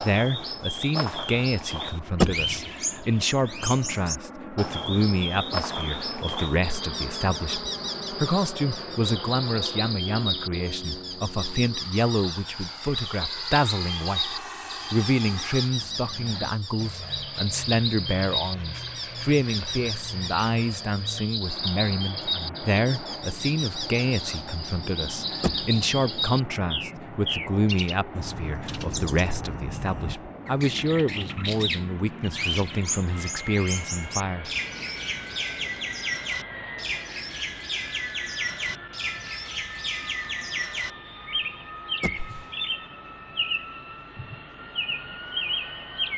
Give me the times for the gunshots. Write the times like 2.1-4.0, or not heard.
2.2-2.7, 25.4-25.9, 42.0-42.5.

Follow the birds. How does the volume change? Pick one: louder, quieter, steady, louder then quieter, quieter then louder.
steady.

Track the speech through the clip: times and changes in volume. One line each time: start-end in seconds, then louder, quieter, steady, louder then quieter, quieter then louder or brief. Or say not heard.
0.0-34.5 steady.